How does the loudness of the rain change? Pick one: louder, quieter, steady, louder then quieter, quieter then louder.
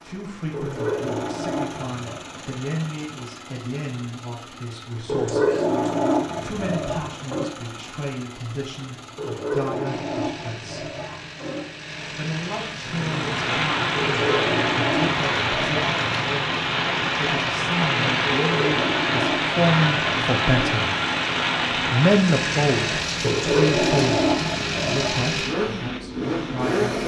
quieter.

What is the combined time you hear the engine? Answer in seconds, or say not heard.
27 s.